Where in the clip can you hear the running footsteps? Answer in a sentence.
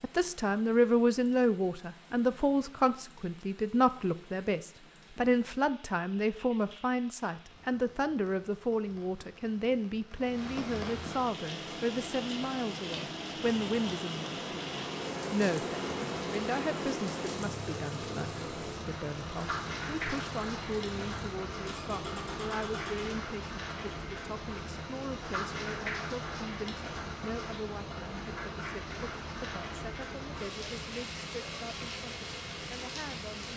You can't hear the running footsteps here.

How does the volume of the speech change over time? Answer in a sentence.
The loudness of the speech goes down.